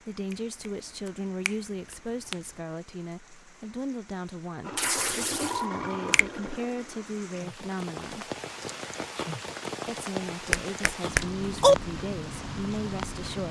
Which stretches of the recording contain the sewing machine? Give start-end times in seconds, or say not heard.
4.6-7.1.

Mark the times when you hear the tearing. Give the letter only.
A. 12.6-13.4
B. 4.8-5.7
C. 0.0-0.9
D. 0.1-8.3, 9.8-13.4
B.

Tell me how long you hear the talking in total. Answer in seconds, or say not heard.
12 s.